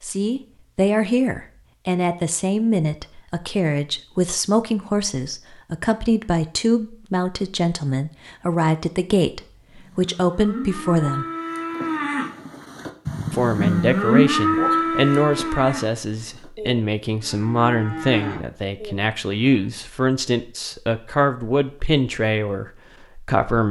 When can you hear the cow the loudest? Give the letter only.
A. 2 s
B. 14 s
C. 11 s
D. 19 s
B.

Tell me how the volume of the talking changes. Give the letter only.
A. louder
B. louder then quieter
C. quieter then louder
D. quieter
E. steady
E.